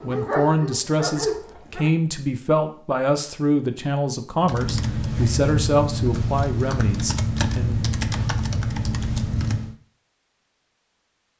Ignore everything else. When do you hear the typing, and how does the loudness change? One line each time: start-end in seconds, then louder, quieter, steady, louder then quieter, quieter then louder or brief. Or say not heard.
4.4-9.8 steady.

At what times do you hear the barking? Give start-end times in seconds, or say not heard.
0.0-1.9.